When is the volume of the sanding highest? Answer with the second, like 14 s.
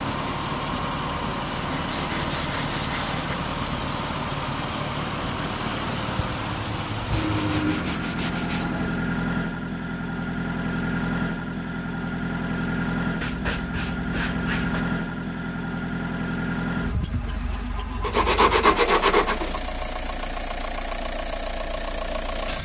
19 s.